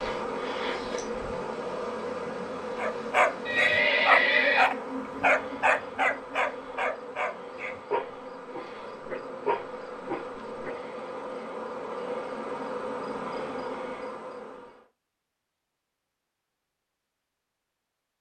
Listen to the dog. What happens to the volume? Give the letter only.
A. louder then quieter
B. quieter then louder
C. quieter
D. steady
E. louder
C.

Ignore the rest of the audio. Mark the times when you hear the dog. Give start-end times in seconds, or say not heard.
2.8-10.8.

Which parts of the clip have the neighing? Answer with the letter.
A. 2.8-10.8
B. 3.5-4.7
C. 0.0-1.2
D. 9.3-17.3
B.